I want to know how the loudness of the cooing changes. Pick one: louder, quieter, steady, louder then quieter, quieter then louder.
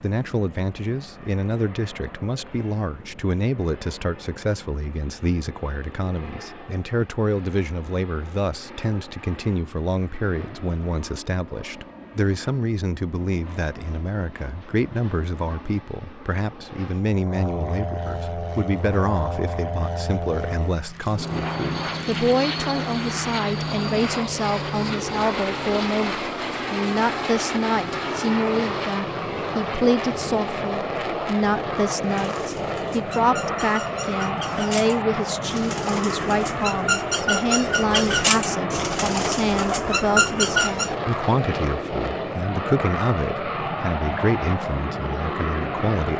louder.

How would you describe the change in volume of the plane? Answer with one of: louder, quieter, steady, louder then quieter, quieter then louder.
louder.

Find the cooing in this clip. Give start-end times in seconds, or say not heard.
32.0-40.9.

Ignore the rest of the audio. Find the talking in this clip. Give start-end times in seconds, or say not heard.
0.0-46.1.